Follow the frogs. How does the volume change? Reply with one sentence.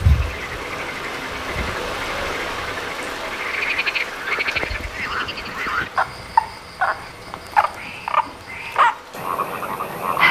The loudness of the frogs goes up.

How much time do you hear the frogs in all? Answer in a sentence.
The frogs can be heard for 10 seconds in total.